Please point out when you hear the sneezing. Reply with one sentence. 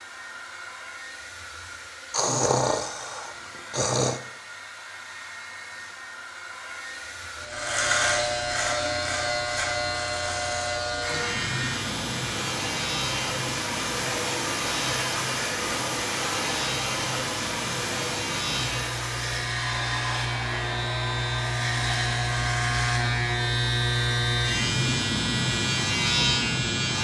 You can hear the sneezing from 2.1 to 4.2 s.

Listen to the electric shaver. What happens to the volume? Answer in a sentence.
The loudness of the electric shaver goes down, then up.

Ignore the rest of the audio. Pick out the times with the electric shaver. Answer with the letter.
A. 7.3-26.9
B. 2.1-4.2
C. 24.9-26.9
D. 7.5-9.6
A.